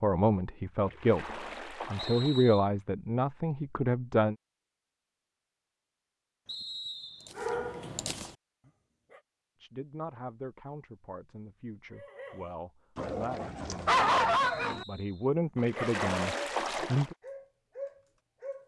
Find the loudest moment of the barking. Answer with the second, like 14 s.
14 s.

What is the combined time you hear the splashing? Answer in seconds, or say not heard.
3 s.